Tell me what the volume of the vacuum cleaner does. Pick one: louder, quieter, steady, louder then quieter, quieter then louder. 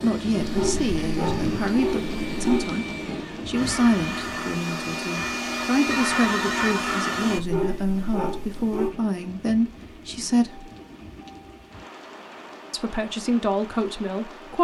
louder.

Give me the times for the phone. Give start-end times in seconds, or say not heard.
5.8-7.0.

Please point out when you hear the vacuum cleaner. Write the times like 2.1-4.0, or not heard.
0.0-7.4.